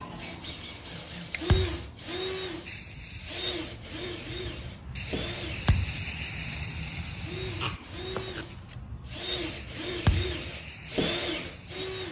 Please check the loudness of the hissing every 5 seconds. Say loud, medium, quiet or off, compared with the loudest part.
medium, loud, medium.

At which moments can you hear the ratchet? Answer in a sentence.
The ratchet can't be heard in this clip.